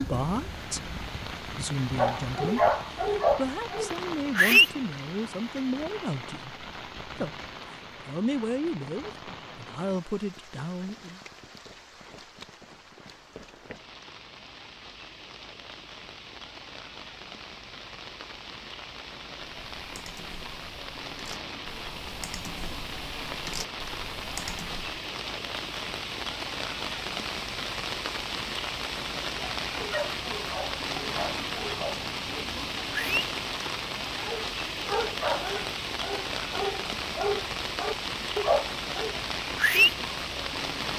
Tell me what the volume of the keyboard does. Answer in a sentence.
The volume of the keyboard goes up.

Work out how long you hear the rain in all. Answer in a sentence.
You can hear the rain for 41 seconds altogether.